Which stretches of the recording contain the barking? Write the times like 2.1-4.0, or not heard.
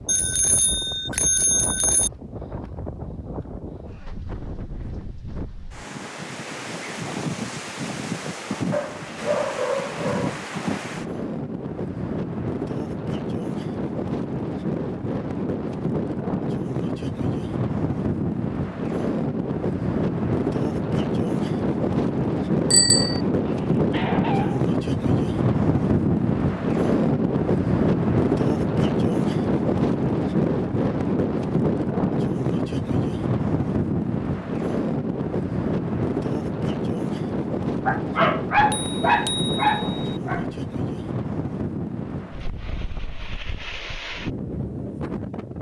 8.7-10.4, 23.5-24.7, 37.8-40.5.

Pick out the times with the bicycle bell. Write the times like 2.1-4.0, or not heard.
0.1-2.1, 22.7-23.2, 38.7-40.2.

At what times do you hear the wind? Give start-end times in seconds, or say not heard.
0.0-45.5.